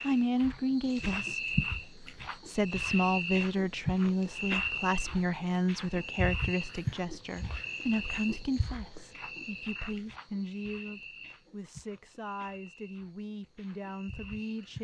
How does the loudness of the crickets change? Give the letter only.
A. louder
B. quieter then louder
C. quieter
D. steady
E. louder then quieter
C.